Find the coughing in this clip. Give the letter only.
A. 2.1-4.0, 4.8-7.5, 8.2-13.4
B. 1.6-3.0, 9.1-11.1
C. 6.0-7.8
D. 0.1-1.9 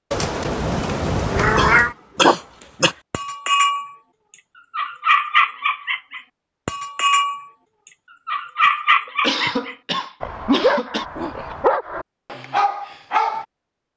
B.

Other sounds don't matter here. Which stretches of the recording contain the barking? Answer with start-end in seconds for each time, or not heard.
2.1-4.0, 4.8-7.5, 8.2-13.4.